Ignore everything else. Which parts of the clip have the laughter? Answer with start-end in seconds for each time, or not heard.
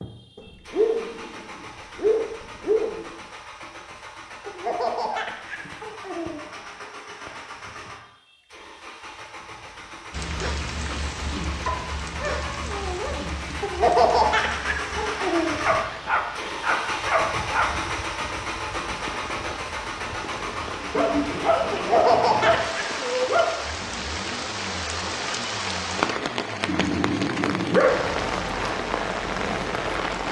4.5-6.8, 13.6-15.6, 21.7-22.9.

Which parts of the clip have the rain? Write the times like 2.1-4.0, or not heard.
10.1-30.2.